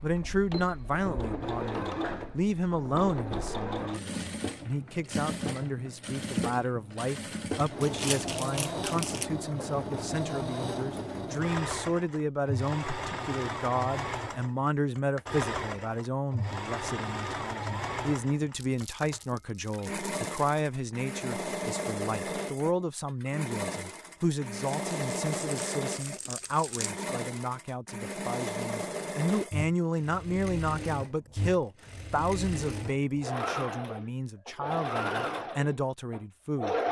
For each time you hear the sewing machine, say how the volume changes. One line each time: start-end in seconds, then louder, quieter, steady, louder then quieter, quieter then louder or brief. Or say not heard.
0.0-36.8 steady.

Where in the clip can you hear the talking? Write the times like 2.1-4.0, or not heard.
0.0-36.8.